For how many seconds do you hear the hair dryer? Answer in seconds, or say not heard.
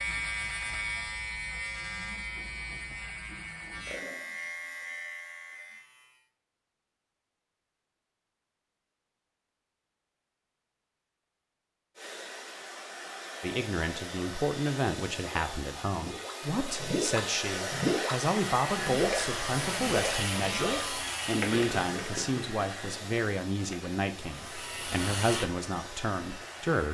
15 s.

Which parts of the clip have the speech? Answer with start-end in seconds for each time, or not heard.
13.4-26.8.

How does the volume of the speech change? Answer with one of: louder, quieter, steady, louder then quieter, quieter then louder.
steady.